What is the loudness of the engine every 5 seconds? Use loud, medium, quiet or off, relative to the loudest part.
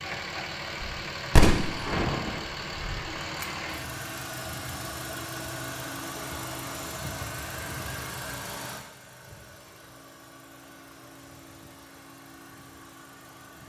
loud, loud, quiet.